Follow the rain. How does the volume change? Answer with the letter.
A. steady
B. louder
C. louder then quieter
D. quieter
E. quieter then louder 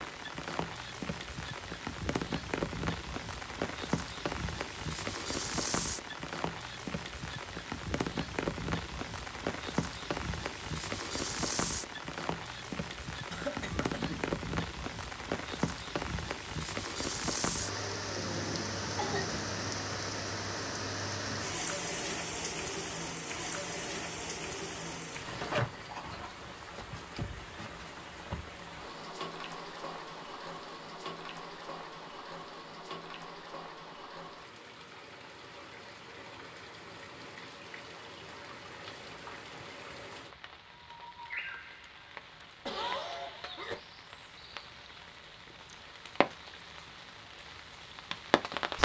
D.